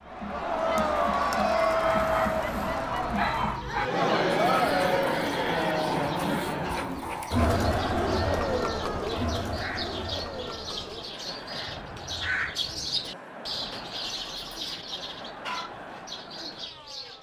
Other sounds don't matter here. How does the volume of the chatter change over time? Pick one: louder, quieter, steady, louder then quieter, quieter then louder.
quieter.